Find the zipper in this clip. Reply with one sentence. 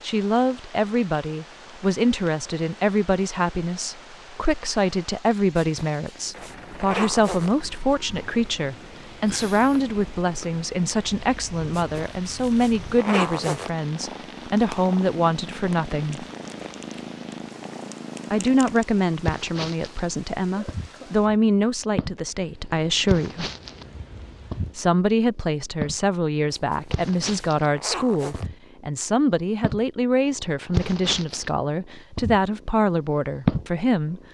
You can hear the zipper from 5.6 to 7.5 s, from 11.8 to 13.7 s and from 26.5 to 28.5 s.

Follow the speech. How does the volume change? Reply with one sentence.
The loudness of the speech stays about the same.